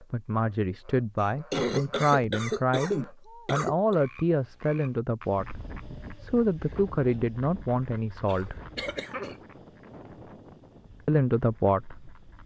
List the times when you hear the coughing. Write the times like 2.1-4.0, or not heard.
1.2-4.0, 8.2-9.3.